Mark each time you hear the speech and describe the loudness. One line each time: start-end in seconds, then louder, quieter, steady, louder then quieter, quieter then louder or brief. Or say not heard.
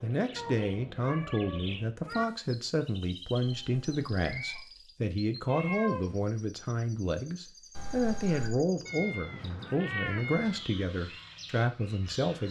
0.0-12.4 steady.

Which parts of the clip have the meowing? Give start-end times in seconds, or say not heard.
0.3-2.2, 5.5-6.2, 8.8-10.7.